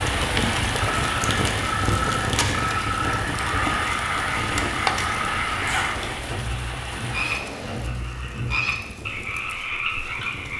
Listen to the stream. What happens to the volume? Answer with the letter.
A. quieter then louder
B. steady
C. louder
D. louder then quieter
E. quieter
E.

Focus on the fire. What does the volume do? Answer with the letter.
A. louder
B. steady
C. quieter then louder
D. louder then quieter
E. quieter
E.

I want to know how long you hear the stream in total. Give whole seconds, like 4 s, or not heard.
8 s.